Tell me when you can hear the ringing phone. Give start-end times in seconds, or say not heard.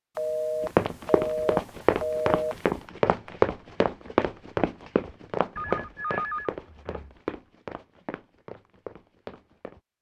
0.1-2.6, 5.5-7.2.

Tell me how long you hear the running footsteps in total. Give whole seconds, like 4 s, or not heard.
9 s.